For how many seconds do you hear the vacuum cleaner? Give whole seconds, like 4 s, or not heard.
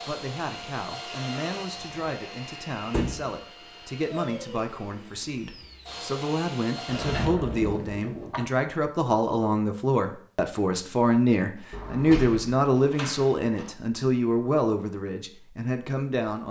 7 s.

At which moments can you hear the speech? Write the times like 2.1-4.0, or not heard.
0.1-16.4.